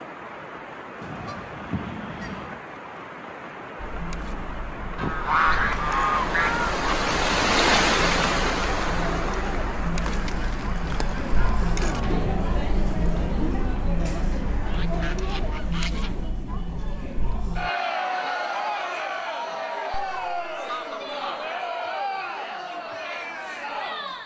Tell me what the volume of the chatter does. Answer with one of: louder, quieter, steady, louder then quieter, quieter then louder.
louder.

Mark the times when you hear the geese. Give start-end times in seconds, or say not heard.
1.0-2.6, 5.0-6.9, 10.0-12.0, 14.7-16.2, 20.1-21.5.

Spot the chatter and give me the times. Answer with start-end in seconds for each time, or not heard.
3.8-24.2.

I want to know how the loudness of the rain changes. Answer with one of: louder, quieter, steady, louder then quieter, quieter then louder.
louder then quieter.